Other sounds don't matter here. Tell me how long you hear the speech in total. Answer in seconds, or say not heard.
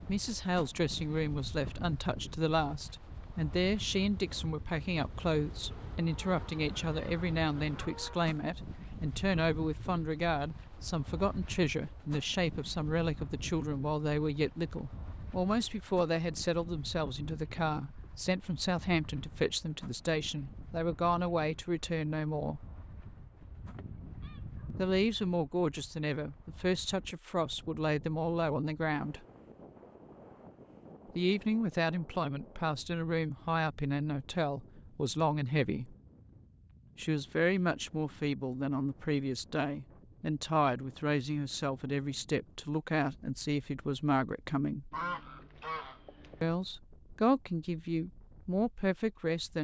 43 s.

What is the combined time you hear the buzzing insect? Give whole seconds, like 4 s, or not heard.
not heard.